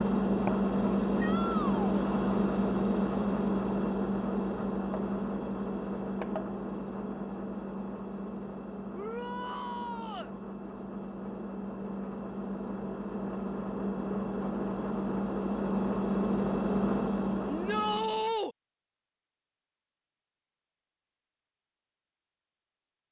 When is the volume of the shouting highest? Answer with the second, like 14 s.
18 s.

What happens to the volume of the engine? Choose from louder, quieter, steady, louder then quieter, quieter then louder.
quieter then louder.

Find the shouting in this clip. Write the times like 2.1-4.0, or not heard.
1.2-2.0, 8.9-10.3, 17.4-18.6.